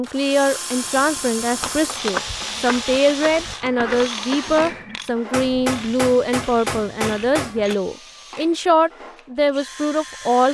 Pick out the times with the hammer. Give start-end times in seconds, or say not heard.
0.8-2.1, 5.3-7.8.